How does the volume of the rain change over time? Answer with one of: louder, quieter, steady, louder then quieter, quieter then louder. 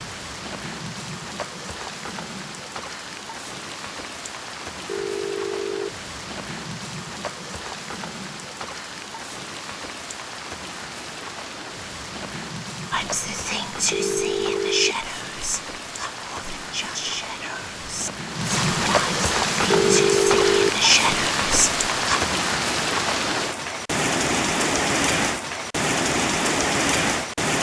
louder.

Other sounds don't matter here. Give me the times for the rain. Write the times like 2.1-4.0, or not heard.
0.0-27.5.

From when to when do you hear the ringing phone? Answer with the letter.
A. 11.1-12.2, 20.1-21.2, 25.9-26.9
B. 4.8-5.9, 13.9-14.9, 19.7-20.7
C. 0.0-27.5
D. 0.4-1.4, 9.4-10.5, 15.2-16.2
B.